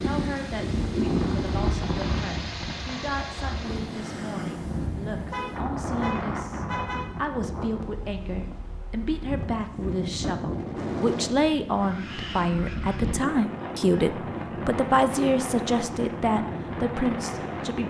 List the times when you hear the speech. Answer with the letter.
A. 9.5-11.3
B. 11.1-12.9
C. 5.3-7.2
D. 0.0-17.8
D.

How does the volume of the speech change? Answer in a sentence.
The volume of the speech goes up.